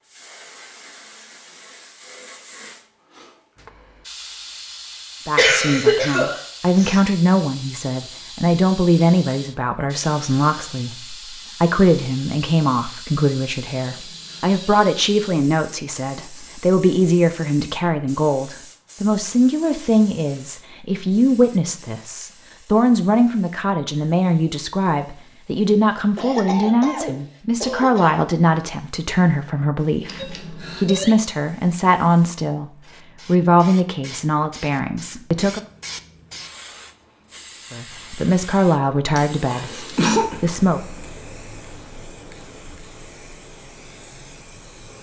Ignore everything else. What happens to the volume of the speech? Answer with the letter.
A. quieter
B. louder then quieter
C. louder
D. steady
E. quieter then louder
D.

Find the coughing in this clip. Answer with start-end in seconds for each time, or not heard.
5.3-7.0, 26.1-28.2, 39.1-40.4.